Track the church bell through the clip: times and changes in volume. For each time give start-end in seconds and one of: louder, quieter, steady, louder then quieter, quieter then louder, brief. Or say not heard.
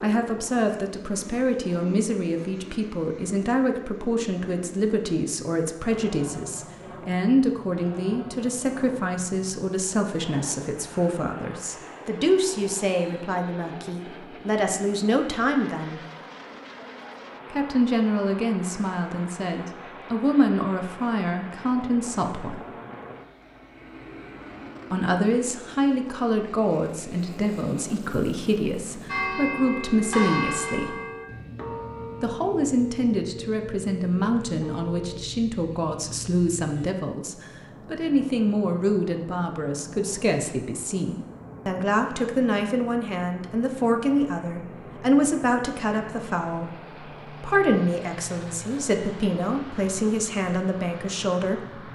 29.1-35.2 quieter.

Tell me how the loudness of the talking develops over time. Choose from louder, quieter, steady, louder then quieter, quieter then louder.
steady.